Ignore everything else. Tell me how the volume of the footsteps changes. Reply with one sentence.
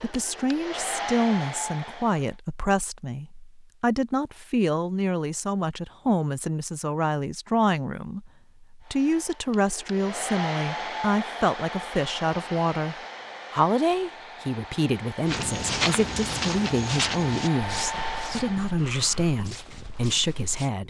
The loudness of the footsteps goes down.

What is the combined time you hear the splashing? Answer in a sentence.
The splashing can't be heard in this clip.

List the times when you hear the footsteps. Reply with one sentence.
The footsteps can be heard from 15.2 to 20.7 s.